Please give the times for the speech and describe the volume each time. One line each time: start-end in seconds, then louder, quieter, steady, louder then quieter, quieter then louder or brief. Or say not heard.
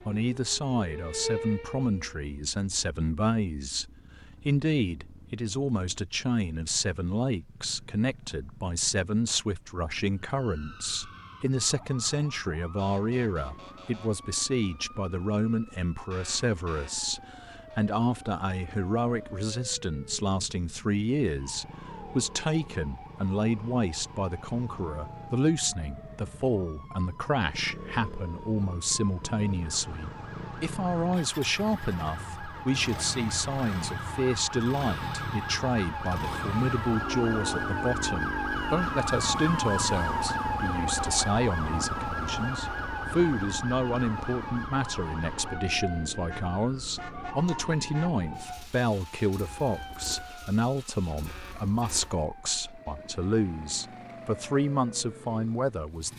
0.1-56.1 steady.